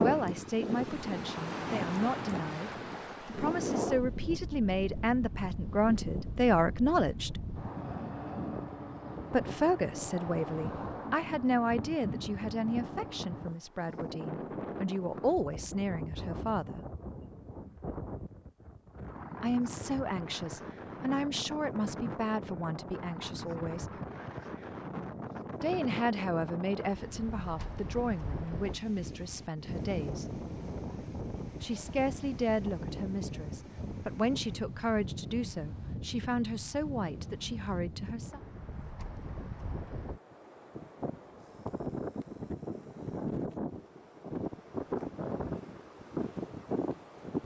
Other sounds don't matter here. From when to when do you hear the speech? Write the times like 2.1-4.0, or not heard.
0.0-7.3, 9.3-16.9, 19.4-23.9, 25.6-30.2, 31.6-38.4.